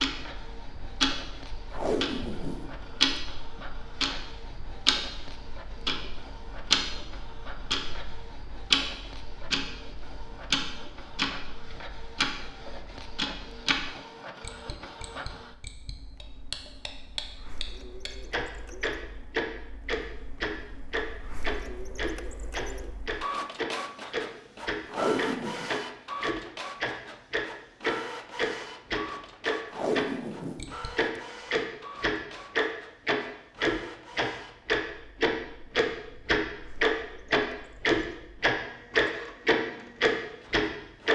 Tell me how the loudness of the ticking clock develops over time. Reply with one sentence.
The volume of the ticking clock goes up.